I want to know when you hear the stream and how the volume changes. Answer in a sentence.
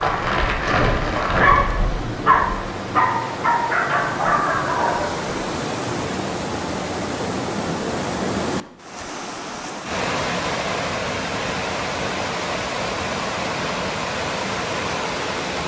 You can hear the stream from 0.0 to 15.6 s, getting louder.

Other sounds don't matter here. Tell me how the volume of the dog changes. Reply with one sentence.
The loudness of the dog stays about the same.